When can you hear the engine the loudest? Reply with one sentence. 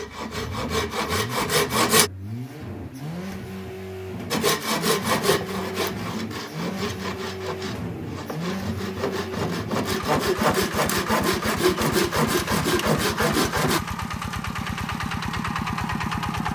The volume of the engine peaks at 16 seconds.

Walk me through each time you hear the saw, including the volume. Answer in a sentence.
You can hear the saw briefly from 0.0 to 2.1 s; and from 4.3 to 13.8 s, getting quieter then louder.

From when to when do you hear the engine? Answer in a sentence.
You can hear the engine from 0.0 to 16.5 s.